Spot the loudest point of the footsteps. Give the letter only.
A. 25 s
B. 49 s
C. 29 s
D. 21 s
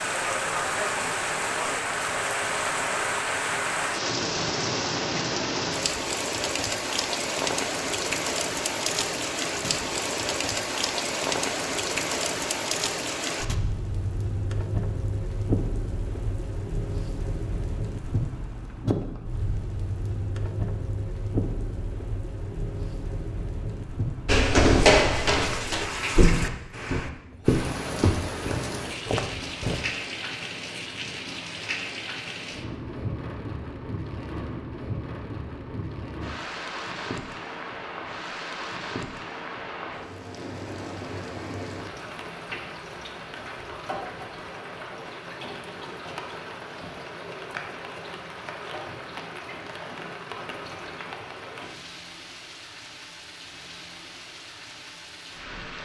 A.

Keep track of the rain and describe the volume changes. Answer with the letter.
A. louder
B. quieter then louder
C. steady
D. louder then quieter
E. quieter
E.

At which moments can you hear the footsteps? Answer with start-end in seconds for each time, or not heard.
24.2-29.9.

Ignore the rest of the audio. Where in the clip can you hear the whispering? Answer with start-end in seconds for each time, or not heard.
not heard.